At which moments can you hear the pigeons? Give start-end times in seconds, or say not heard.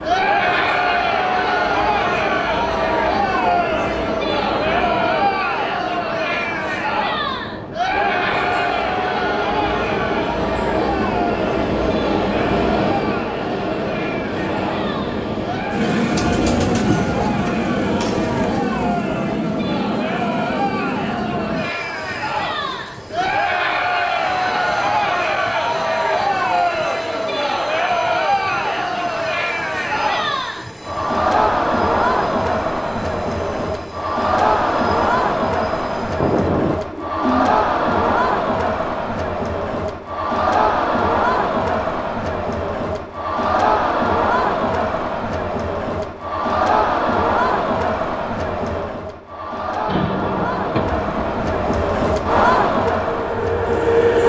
16.1-18.6, 36.2-38.2.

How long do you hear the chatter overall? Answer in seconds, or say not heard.
54 s.